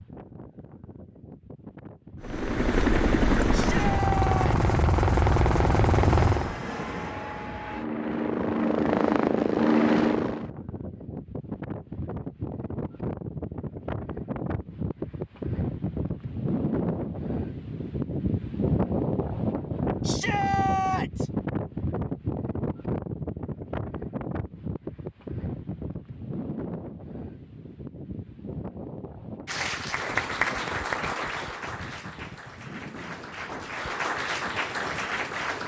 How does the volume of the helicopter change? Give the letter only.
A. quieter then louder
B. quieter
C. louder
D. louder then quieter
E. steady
A.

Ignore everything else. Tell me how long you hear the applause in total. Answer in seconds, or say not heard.
6 s.